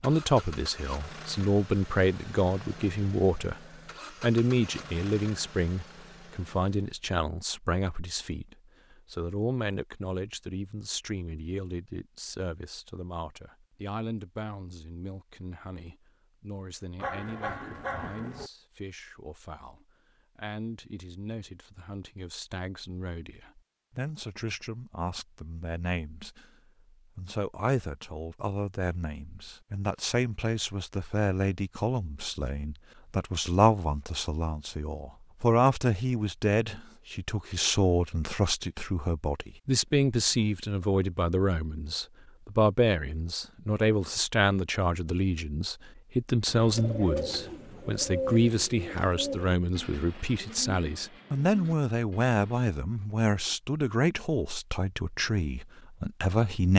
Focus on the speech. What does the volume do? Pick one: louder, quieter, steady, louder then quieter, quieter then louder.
quieter then louder.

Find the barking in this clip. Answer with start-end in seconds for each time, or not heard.
16.9-18.5.